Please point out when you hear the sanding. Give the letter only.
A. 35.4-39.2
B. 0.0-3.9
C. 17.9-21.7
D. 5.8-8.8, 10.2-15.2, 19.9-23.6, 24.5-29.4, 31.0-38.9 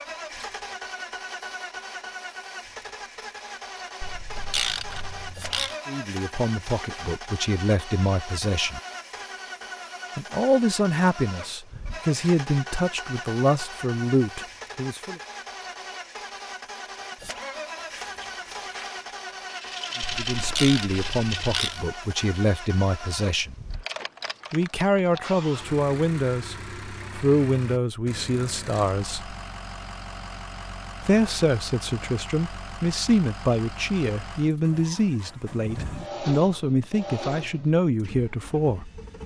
C.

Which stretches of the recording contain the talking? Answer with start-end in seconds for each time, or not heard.
5.8-8.8, 10.2-15.2, 19.9-23.6, 24.5-29.4, 31.0-38.9.